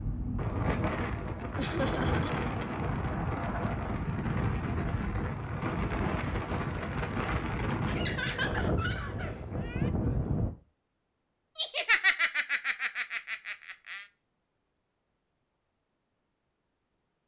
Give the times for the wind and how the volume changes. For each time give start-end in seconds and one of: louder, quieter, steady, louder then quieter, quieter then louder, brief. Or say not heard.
0.0-10.5 steady.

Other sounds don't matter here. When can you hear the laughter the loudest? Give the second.
12 s.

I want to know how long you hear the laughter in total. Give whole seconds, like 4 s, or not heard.
5 s.